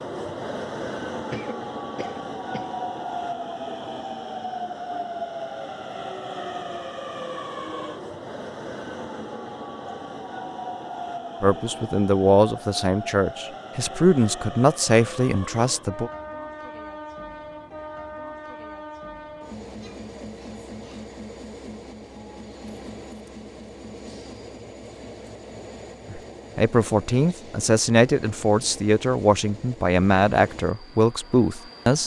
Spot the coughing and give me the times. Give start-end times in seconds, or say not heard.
1.3-2.8.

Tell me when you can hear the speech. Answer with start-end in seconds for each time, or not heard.
11.4-16.1, 26.1-32.0.